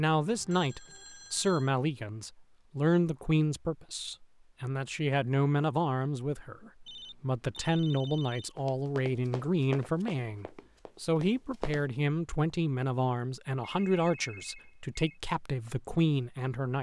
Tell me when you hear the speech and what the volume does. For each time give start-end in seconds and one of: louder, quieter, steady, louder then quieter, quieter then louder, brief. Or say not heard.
0.0-16.7 steady.